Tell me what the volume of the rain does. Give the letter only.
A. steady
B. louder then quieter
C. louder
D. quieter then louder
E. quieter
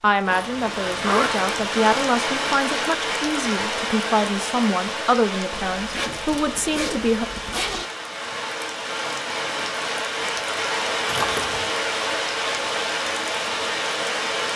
D.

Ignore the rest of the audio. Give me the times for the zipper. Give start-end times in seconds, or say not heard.
0.2-1.8, 5.5-7.8, 11.1-11.7.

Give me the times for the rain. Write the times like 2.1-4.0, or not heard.
0.1-14.5.